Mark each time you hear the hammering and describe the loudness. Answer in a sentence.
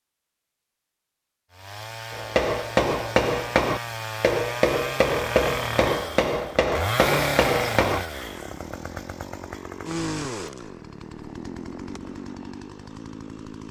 The hammering can be heard from 2.1 to 8.0 s, at a steady volume.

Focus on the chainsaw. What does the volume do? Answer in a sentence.
The volume of the chainsaw goes up, then down.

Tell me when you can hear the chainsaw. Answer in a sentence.
The chainsaw can be heard from 1.5 to 13.6 s.